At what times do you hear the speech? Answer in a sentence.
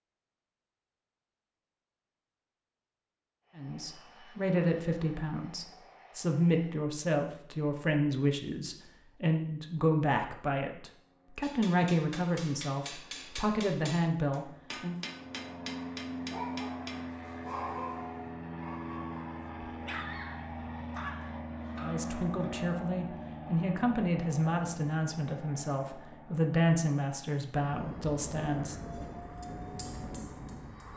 The speech can be heard from 3.5 to 14.9 s and from 21.8 to 28.8 s.